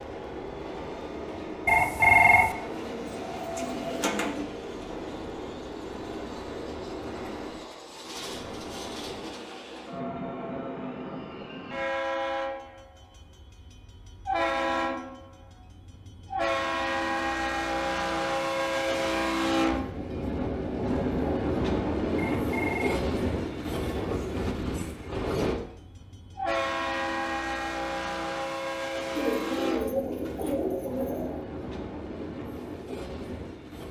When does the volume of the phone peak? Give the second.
2 s.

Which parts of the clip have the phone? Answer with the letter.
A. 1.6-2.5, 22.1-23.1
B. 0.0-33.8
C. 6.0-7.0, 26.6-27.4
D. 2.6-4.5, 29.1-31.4
A.